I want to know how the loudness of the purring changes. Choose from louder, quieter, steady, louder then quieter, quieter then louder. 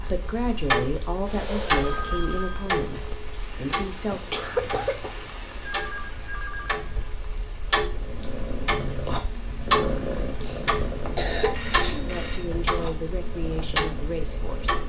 quieter.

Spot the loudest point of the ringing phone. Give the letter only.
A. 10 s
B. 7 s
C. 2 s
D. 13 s
C.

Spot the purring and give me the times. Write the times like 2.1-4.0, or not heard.
7.8-14.8.